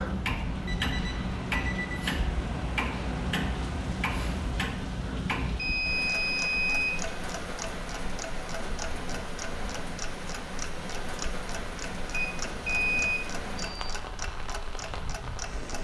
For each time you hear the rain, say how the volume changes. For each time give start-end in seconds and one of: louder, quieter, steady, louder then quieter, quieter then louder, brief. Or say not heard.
0.0-15.8 steady.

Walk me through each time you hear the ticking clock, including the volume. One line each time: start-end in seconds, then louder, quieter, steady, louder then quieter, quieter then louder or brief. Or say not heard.
0.0-15.8 quieter.